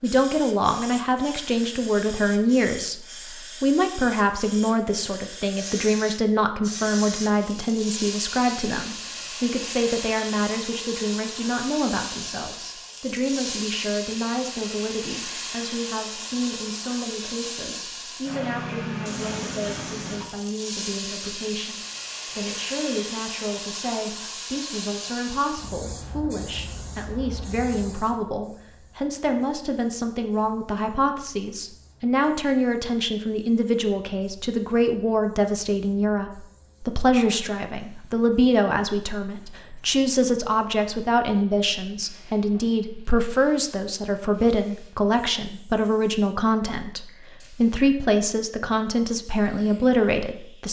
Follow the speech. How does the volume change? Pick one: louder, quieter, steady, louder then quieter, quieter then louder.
quieter then louder.